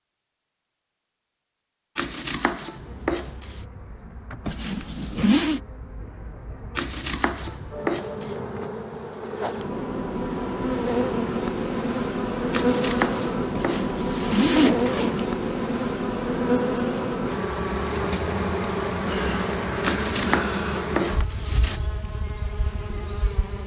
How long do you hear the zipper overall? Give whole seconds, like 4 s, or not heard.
3 s.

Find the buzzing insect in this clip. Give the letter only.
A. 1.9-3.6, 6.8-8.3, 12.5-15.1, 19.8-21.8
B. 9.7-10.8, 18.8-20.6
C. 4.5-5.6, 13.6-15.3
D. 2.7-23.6
D.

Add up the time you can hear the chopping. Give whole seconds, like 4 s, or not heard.
8 s.